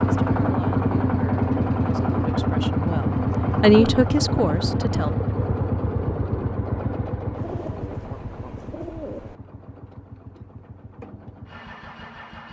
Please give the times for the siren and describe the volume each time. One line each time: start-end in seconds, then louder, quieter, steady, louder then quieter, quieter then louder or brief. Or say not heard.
not heard.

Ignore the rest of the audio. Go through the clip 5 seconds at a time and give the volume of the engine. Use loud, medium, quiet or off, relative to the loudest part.
loud, medium, quiet.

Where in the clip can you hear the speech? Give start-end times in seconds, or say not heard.
0.0-5.2.